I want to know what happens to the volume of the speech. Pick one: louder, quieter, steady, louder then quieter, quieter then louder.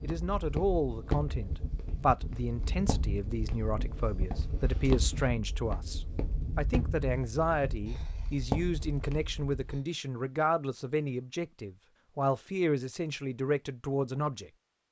steady.